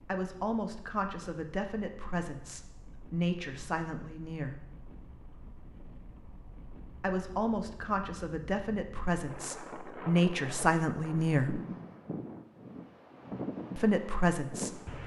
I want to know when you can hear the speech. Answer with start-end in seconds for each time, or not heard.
0.1-4.7, 7.0-11.6, 13.8-15.0.